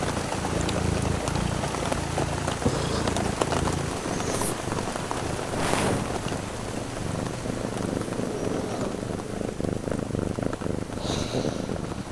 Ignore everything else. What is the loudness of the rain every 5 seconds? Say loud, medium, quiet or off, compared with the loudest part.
loud, medium, medium.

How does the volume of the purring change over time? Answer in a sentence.
The loudness of the purring stays about the same.